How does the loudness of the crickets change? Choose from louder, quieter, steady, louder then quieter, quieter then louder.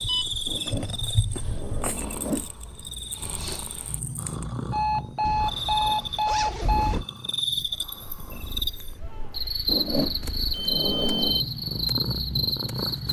quieter then louder.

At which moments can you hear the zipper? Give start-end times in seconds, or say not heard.
0.5-2.5, 5.2-7.0, 9.7-11.4.